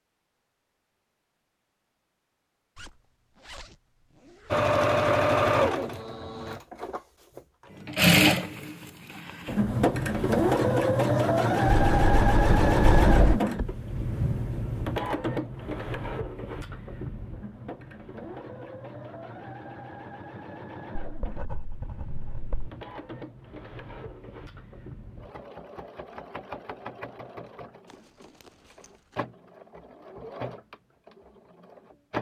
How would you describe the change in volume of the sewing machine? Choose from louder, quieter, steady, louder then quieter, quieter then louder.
quieter.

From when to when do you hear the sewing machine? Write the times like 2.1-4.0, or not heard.
4.5-32.1.